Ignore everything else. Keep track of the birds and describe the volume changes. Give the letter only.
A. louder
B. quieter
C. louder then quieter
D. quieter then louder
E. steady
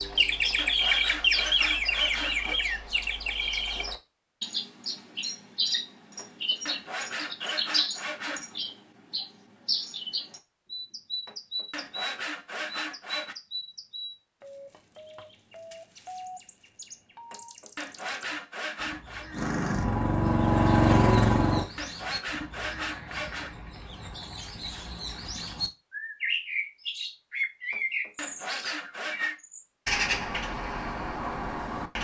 D.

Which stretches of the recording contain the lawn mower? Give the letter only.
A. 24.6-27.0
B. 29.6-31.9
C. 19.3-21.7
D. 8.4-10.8
C.